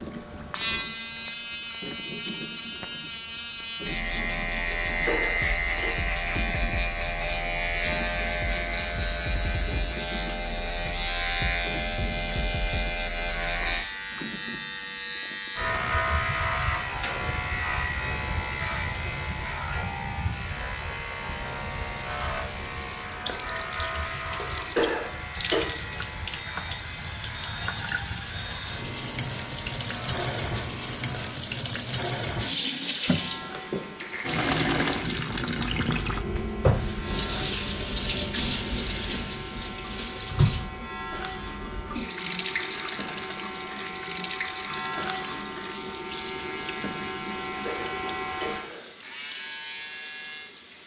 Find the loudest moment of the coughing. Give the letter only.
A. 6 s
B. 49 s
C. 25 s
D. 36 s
C.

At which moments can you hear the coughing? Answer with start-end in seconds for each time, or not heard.
4.8-6.0, 24.4-25.6, 47.5-49.0.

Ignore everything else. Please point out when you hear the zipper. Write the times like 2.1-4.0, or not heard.
not heard.